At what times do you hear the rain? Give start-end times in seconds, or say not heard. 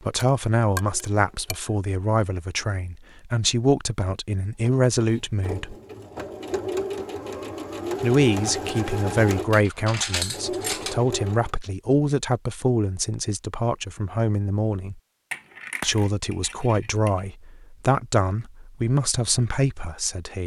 not heard.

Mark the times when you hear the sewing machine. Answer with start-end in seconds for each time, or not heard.
0.0-1.7, 4.6-11.5.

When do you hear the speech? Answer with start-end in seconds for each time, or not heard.
0.0-5.8, 8.0-15.0, 15.8-20.4.